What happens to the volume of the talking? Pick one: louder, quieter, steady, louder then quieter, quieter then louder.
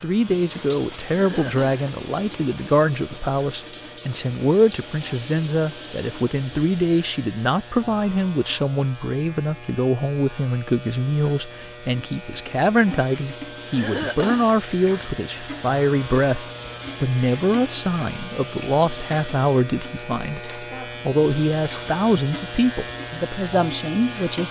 steady.